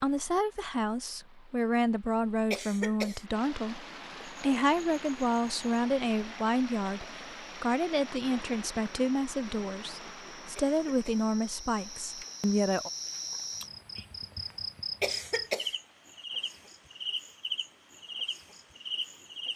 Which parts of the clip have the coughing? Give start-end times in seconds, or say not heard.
2.5-3.2, 10.6-11.3, 15.0-15.8.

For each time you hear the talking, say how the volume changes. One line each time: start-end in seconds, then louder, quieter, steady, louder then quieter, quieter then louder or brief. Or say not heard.
0.0-12.9 steady.